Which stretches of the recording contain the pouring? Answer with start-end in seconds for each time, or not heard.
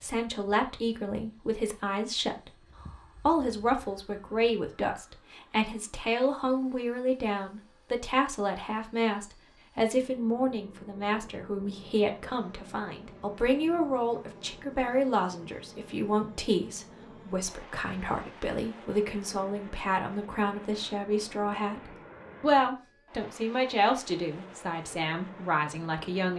not heard.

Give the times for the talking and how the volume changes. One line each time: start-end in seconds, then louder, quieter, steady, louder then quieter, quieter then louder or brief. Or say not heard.
0.0-26.3 steady.